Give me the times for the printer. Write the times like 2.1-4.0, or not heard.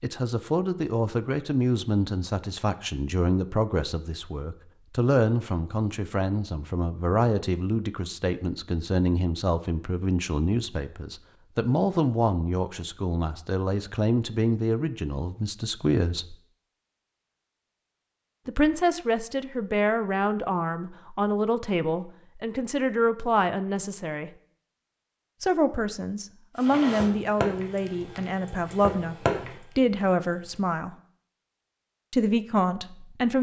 26.6-30.6.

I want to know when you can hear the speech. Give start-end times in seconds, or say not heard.
0.0-16.4, 18.4-24.3, 25.4-30.9, 32.1-33.3.